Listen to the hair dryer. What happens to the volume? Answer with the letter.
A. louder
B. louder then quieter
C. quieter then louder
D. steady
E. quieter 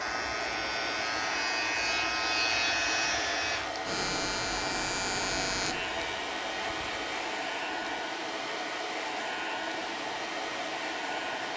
D.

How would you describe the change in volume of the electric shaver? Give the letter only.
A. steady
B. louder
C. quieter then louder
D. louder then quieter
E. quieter
E.